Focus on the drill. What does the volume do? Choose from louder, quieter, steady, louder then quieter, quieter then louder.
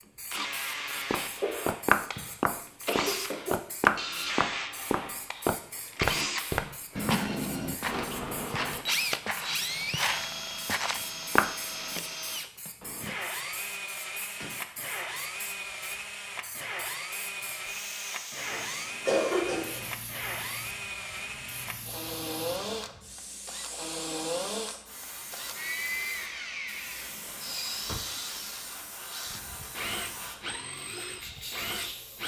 steady.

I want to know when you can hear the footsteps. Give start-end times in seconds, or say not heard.
1.1-11.6.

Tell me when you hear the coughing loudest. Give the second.
19 s.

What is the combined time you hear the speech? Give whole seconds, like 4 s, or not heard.
not heard.